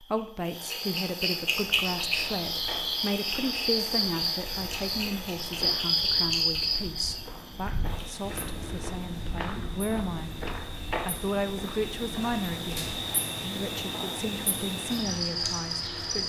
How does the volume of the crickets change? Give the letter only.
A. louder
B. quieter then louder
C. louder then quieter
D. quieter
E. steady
B.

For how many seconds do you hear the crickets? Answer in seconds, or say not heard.
16 s.